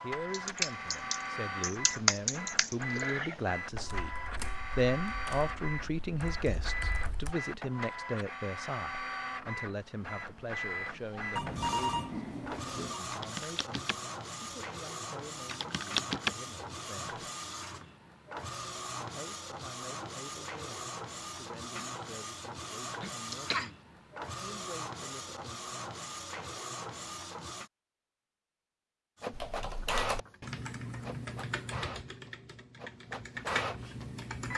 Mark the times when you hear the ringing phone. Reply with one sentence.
You can hear the ringing phone from 11.3 to 13.0 s.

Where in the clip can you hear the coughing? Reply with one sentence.
You can hear the coughing from 23.0 to 23.7 s.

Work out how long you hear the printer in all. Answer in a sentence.
You can hear the printer for 33 seconds altogether.